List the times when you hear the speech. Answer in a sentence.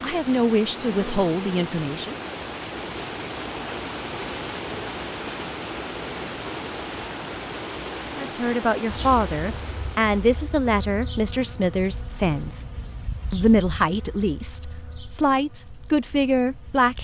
You can hear the speech from 0.0 to 2.1 s, from 8.2 to 12.7 s and from 13.3 to 16.9 s.